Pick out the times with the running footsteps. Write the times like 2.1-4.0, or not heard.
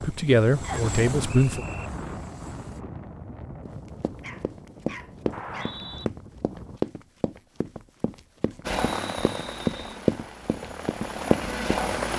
3.6-11.8.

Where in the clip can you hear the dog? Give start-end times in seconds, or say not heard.
4.2-5.8.